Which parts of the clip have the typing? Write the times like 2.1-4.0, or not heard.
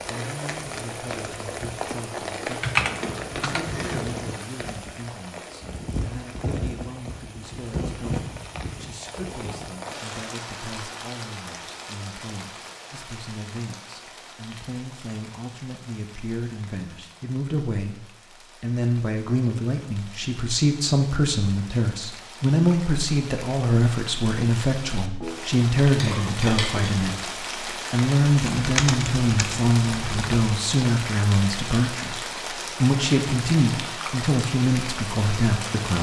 2.5-4.1, 28.4-30.4.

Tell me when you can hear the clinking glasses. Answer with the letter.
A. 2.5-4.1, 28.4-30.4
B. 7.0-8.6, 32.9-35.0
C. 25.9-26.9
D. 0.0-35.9
C.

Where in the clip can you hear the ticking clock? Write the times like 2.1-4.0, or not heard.
not heard.